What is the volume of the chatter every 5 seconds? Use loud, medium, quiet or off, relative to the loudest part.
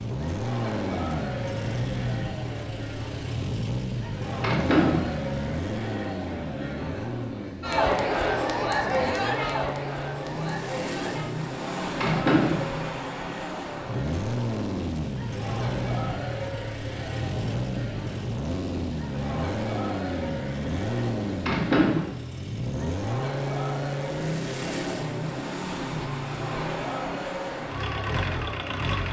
medium, loud, medium, medium, medium, medium.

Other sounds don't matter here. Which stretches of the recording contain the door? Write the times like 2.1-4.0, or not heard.
4.4-5.2, 12.0-12.7, 21.4-22.1.